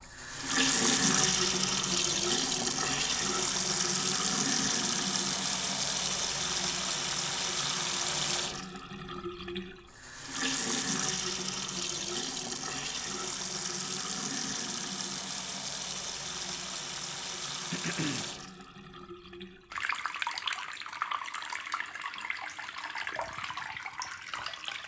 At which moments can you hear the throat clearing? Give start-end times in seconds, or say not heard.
17.7-18.2.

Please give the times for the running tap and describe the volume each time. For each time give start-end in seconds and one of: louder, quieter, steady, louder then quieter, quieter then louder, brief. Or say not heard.
0.0-24.8 quieter.